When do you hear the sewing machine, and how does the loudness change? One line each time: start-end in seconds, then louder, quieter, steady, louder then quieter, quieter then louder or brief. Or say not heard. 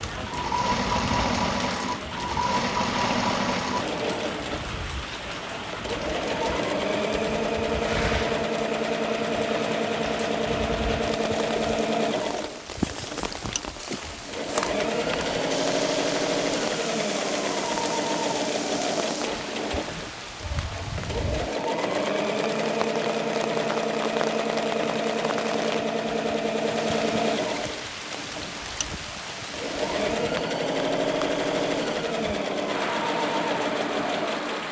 0.0-34.6 steady.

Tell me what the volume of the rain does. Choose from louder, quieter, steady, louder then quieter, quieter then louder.
steady.